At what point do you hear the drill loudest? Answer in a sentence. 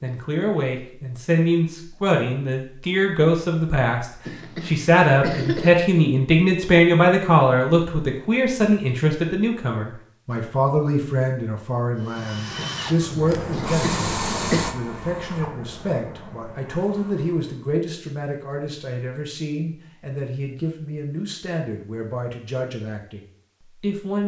The loudest moment of the drill is at 14 seconds.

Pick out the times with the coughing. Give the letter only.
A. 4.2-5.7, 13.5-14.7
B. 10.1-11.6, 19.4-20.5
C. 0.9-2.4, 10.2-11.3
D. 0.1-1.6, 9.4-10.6
A.